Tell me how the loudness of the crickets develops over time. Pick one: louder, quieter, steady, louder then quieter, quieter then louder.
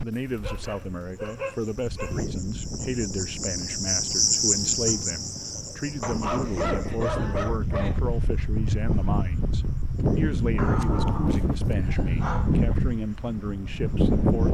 louder then quieter.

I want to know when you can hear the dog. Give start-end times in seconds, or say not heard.
0.1-2.2, 6.0-8.0, 10.6-12.6.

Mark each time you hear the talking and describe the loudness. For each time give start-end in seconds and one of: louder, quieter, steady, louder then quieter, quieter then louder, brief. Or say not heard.
0.0-14.5 steady.